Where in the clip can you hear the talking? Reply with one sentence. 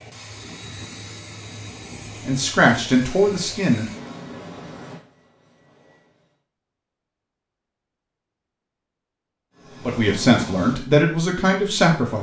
You can hear the talking from 2.2 to 3.9 s and from 9.8 to 12.1 s.